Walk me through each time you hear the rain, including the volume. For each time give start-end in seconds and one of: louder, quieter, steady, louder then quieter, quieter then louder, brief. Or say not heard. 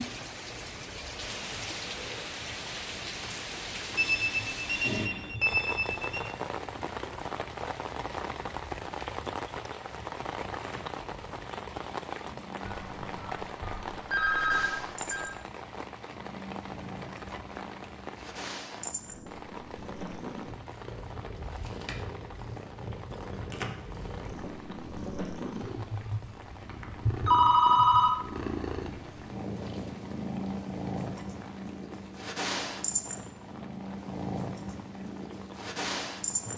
0.0-36.5 quieter.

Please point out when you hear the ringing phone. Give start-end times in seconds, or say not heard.
4.0-6.3, 12.7-15.2, 27.2-28.1.